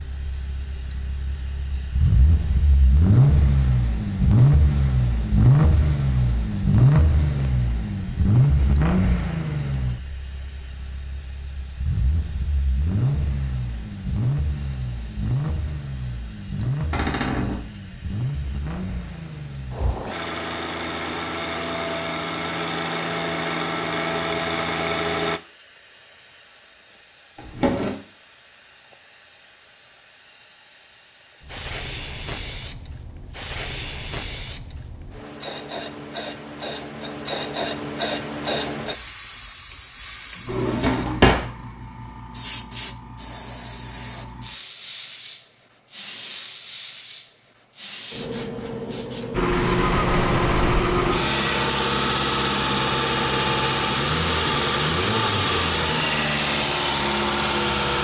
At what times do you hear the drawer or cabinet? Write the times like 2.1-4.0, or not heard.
16.9-17.6, 27.4-27.9, 40.5-41.5.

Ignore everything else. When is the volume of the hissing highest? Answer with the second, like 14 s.
38 s.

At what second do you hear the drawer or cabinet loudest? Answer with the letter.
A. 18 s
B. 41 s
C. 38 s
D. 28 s
B.